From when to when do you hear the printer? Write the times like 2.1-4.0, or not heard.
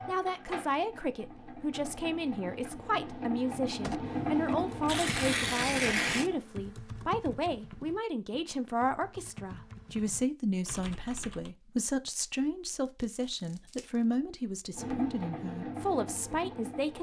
0.0-6.4, 14.7-16.9.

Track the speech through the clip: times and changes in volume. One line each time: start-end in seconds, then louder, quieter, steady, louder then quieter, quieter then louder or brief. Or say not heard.
0.1-16.9 steady.